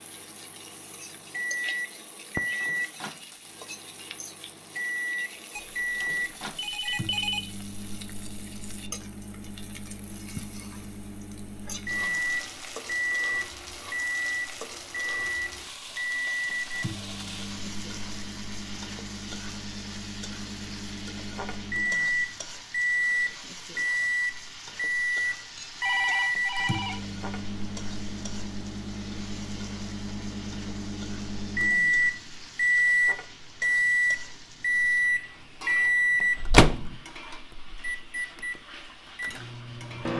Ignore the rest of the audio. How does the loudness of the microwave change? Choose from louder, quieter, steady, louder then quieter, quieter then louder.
louder.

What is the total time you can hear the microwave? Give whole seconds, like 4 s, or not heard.
40 s.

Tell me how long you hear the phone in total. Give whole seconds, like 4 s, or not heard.
3 s.